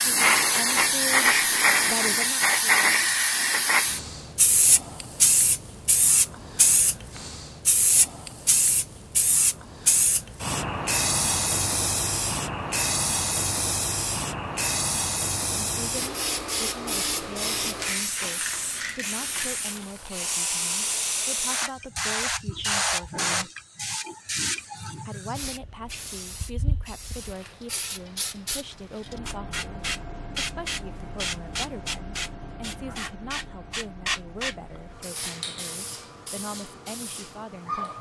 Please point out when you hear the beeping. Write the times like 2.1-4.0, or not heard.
not heard.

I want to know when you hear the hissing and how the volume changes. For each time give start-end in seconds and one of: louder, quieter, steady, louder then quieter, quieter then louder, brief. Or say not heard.
0.0-37.9 quieter.